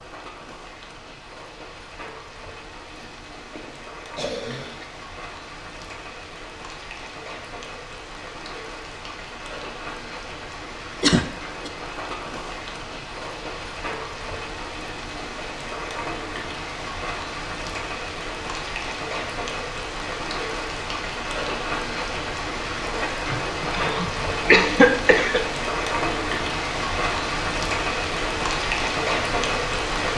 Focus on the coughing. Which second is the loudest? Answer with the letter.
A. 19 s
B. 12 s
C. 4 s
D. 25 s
D.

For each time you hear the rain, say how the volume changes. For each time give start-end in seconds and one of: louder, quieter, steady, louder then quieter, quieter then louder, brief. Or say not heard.
0.0-30.1 louder.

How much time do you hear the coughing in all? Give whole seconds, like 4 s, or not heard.
5 s.